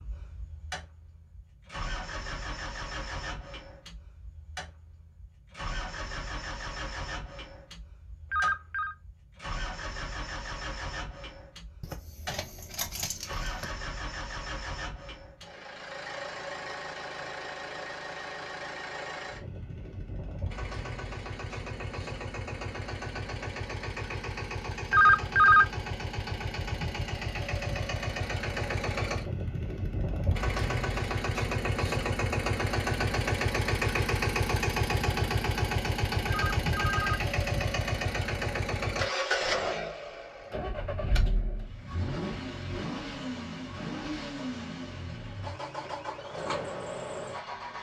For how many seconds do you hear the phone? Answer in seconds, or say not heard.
2 s.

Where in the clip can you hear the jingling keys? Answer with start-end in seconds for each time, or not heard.
11.8-13.7.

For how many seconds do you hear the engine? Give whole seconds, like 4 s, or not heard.
48 s.